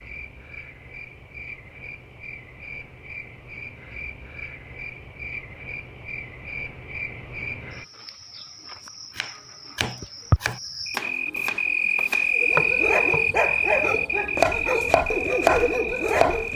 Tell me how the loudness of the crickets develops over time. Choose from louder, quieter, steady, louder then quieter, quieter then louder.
louder.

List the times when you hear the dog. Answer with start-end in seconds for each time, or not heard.
12.3-16.5.